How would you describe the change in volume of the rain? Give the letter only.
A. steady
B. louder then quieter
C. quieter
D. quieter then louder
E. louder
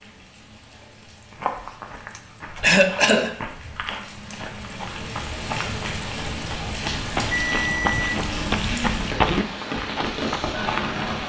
E.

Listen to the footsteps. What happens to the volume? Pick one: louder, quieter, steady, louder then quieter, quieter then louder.
louder.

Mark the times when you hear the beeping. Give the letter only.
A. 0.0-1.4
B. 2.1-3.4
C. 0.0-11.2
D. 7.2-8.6
D.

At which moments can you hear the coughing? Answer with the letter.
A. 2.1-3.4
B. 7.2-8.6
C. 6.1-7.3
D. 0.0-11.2
A.